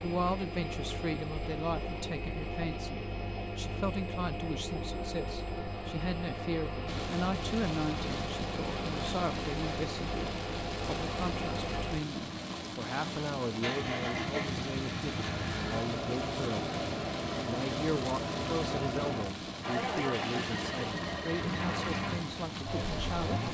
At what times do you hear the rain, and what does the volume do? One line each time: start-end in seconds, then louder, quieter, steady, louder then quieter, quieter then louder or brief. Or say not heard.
6.8-23.4 steady.